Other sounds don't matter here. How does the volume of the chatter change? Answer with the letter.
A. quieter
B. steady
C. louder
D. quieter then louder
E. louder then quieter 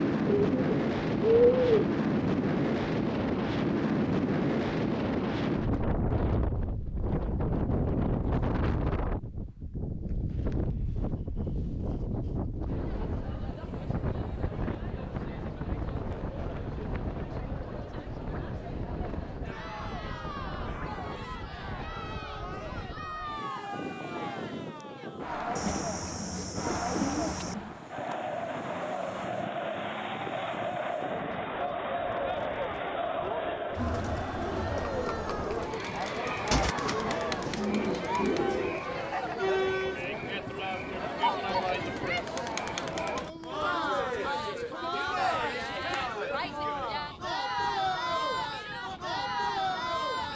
C.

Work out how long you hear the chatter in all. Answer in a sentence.
The chatter can be heard for 38 seconds in total.